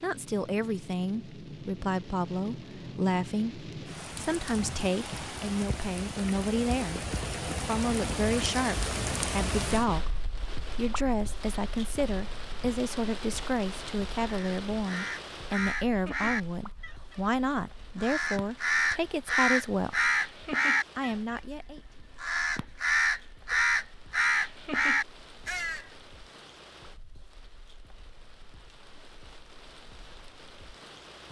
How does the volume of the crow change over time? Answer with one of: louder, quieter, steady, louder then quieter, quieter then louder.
louder.